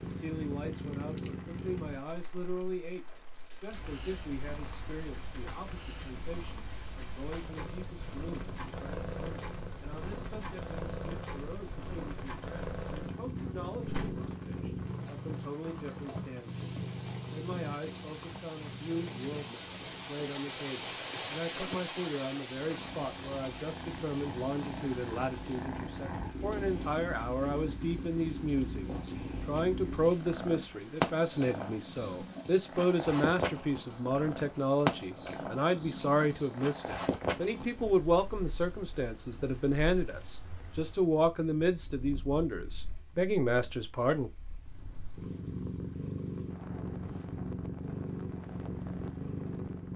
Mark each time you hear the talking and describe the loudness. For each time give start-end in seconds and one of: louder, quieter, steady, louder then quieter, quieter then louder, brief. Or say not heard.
0.0-44.3 louder.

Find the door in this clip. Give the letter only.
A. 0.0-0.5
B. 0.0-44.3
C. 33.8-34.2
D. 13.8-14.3
D.